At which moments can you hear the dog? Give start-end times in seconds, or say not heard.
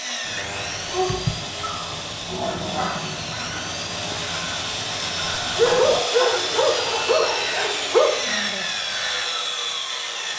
0.9-3.4, 5.5-8.1.